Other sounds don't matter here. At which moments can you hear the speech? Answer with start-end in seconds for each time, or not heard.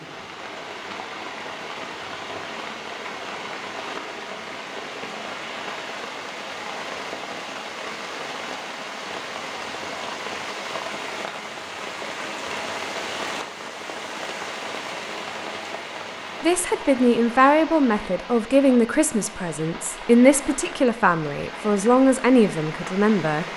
16.4-23.4.